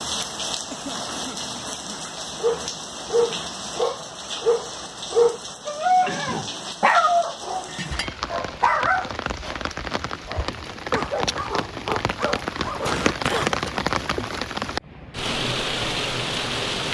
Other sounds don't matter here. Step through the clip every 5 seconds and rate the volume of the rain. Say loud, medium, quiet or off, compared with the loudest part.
medium, medium, loud, loud.